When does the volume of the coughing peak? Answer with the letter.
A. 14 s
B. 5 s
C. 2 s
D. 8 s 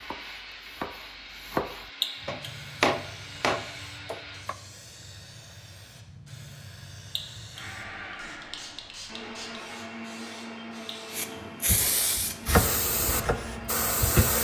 C.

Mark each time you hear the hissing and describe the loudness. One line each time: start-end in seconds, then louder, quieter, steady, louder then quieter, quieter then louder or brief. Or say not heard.
2.1-14.4 louder.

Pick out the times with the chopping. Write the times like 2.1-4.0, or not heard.
0.0-4.5, 11.7-14.4.